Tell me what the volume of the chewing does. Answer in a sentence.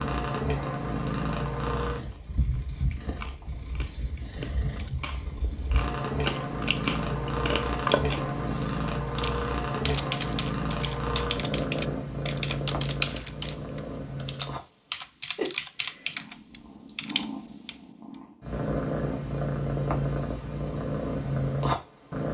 The volume of the chewing goes up.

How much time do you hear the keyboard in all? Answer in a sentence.
The keyboard can be heard for 9 seconds in total.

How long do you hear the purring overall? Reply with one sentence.
The purring can be heard for 22 seconds in total.